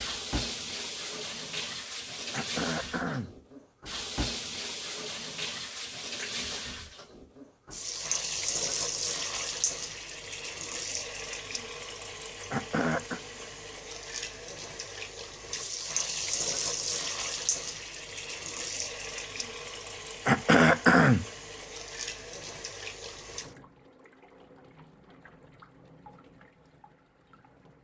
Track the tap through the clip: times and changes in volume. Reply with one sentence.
You can hear the tap from 0.0 to 27.8 s, getting quieter.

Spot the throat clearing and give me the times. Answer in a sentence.
The throat clearing can be heard from 2.3 to 3.4 s, from 12.5 to 13.2 s and from 20.2 to 21.2 s.